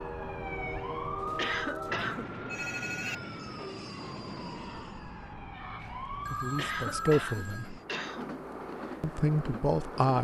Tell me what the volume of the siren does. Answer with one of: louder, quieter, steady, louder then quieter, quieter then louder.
quieter then louder.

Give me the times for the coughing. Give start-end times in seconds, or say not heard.
1.4-2.3, 6.5-8.3.